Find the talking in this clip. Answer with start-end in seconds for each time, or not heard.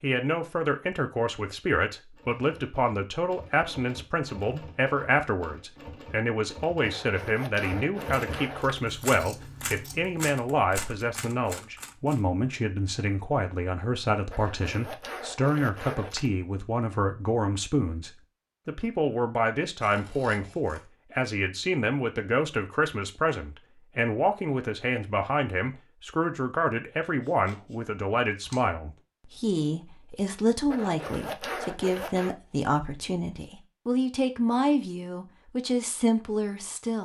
0.0-36.9.